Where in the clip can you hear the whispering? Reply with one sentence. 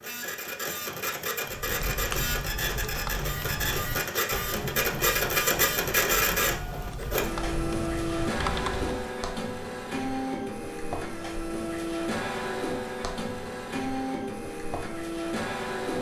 You can't hear the whispering here.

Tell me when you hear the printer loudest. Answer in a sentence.
The loudest moment of the printer is at 6 seconds.